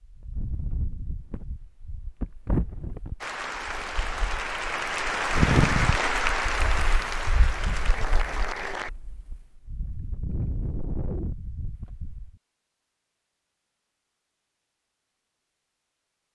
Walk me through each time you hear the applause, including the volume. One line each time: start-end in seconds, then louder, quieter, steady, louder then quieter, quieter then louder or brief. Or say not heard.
3.2-8.9 louder then quieter.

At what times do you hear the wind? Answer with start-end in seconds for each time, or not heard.
0.0-12.3.